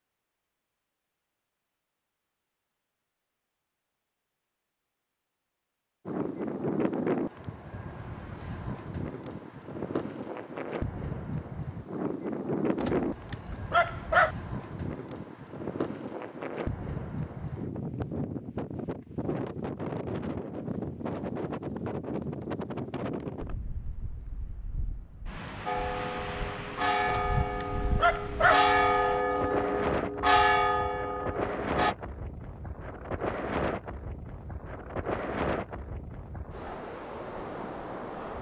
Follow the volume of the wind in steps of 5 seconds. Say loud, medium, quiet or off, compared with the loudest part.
off, loud, loud, loud, loud, loud, loud, loud.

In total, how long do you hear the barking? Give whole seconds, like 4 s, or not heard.
3 s.